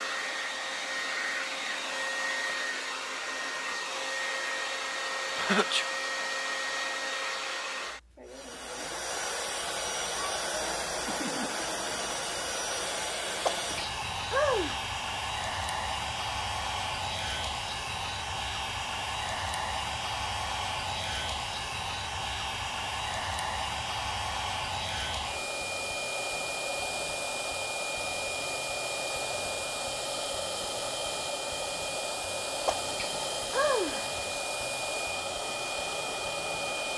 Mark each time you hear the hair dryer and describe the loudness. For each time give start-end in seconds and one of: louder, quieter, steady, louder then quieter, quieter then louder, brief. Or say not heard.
0.0-36.9 steady.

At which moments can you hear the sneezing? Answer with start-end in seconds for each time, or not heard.
5.3-5.8, 13.4-14.8, 32.6-34.4.